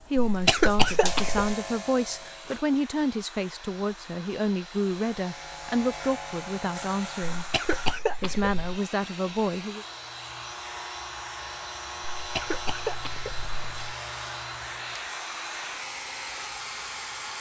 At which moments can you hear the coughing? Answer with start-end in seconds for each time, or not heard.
0.2-1.6, 7.3-8.8, 12.2-13.9.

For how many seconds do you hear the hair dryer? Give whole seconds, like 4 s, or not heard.
17 s.